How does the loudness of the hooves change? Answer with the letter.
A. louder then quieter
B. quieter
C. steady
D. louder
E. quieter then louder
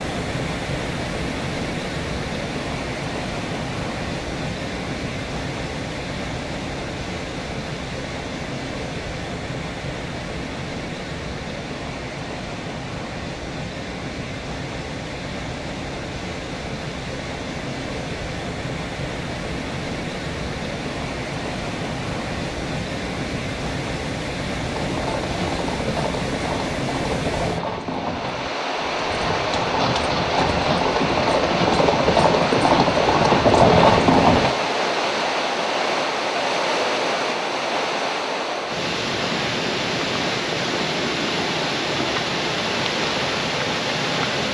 D.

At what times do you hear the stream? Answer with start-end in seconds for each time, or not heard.
0.0-44.4.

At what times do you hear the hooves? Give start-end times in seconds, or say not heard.
24.6-34.5.